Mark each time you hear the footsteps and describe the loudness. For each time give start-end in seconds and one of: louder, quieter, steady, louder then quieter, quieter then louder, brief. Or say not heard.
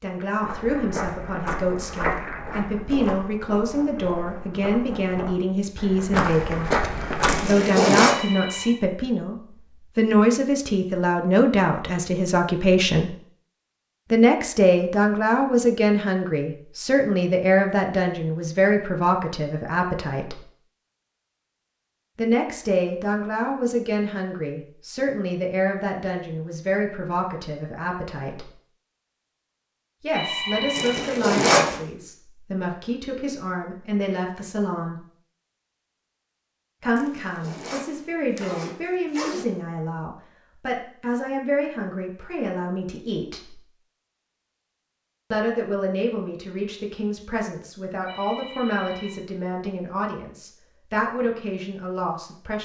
0.4-7.5 quieter then louder.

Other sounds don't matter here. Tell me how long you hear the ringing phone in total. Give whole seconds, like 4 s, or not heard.
3 s.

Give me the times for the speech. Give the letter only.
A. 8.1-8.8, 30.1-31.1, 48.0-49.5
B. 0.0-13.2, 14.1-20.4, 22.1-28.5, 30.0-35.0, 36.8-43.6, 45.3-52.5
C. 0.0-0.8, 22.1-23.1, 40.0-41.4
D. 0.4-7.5
B.